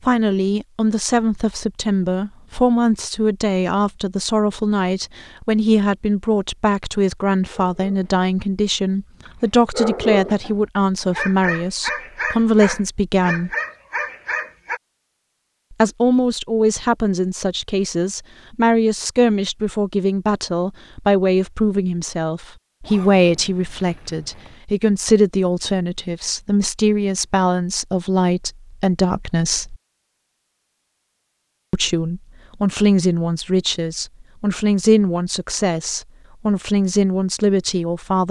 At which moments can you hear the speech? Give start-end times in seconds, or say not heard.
0.0-13.5, 15.7-29.8, 31.7-38.2.